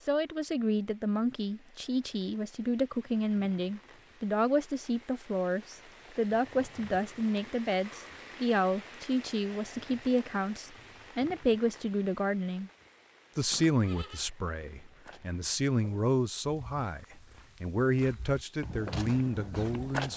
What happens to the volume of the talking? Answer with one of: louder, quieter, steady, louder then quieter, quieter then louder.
steady.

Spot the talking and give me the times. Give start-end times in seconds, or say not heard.
0.1-12.7, 13.3-20.1.